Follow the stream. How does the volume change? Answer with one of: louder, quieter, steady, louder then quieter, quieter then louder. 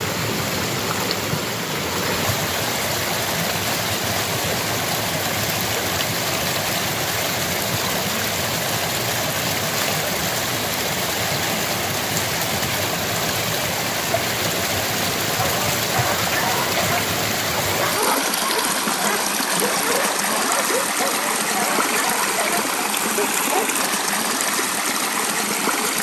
steady.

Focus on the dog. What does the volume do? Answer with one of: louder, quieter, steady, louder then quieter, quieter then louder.
steady.